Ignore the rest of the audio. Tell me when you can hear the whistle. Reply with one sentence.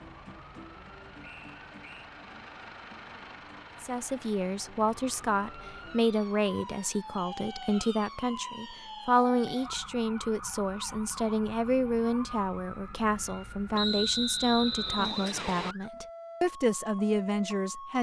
You can hear the whistle from 1.2 to 2.1 s, from 7.2 to 9.2 s and from 13.8 to 15.8 s.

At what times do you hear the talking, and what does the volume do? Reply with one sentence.
You can hear the talking from 3.8 to 17.9 s, at a steady volume.